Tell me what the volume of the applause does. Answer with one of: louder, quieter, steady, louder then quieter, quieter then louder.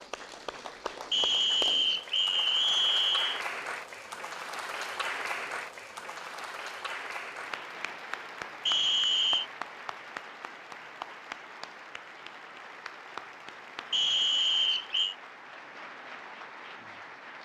quieter.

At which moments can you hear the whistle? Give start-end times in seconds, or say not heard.
1.1-3.5, 8.7-9.4, 13.9-15.2.